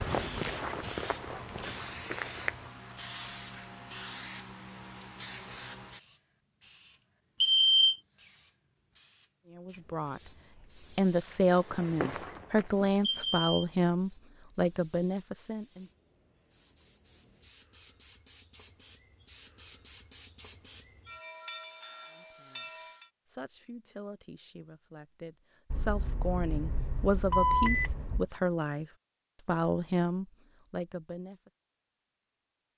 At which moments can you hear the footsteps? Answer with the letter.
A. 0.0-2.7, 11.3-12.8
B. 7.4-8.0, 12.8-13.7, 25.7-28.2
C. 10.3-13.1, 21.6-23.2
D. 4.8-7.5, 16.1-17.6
A.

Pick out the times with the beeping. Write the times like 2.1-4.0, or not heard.
7.4-8.0, 12.8-13.7, 25.7-28.2.